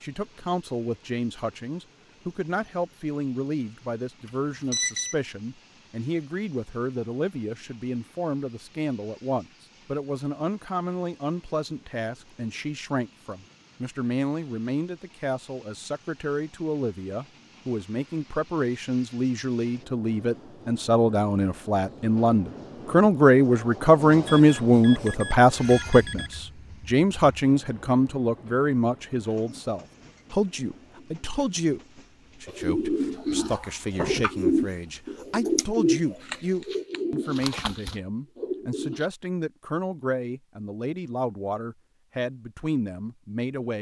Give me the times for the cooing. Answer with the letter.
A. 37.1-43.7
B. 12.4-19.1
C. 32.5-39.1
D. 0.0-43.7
C.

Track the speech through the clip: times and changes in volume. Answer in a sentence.
You can hear the speech from 0.0 to 43.7 s, getting louder then quieter.